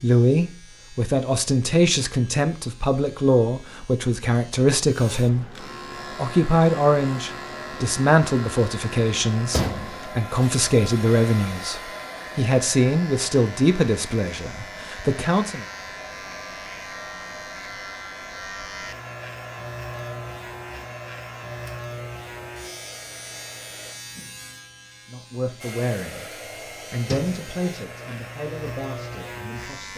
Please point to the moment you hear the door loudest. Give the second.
10 s.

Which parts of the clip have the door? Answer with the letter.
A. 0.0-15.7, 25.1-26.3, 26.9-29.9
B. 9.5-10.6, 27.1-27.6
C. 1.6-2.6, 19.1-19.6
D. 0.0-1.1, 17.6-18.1
B.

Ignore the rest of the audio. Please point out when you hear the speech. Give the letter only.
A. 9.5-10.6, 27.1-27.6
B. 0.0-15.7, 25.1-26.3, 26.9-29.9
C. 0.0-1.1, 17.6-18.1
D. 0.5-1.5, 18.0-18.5
B.